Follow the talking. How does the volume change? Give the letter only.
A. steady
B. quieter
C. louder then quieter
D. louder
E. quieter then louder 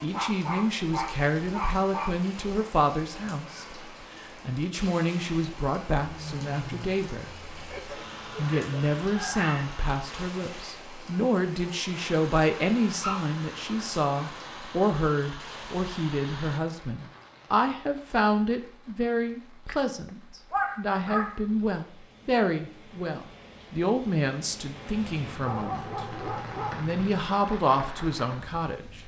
A.